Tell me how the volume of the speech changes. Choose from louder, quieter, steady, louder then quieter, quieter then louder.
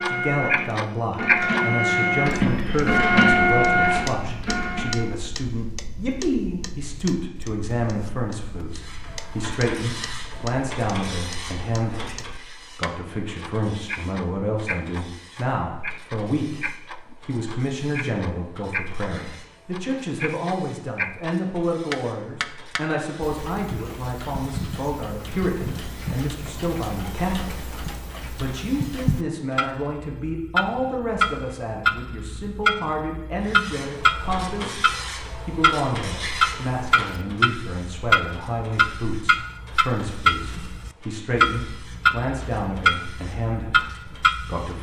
steady.